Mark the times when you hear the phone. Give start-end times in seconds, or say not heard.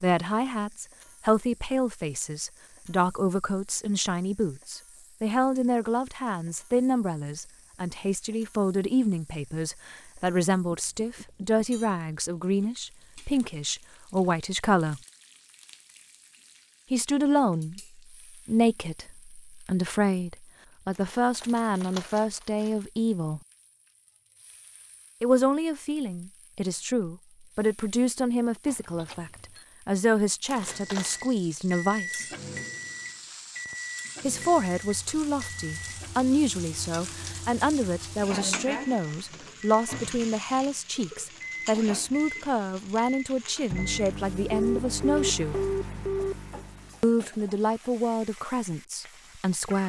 10.7-11.7, 28.6-29.6, 44.5-46.6.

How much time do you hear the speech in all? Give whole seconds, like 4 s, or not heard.
43 s.